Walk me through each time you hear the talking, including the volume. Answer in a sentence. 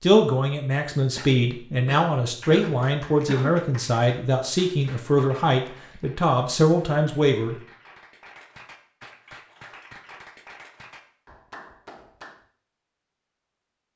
The talking can be heard from 0.0 to 7.6 s, at a steady volume.